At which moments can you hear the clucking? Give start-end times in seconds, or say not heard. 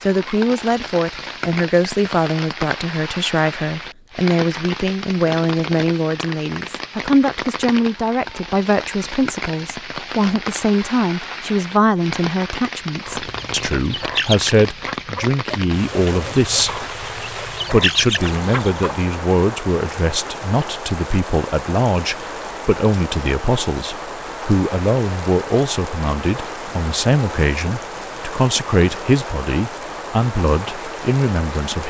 13.0-19.0.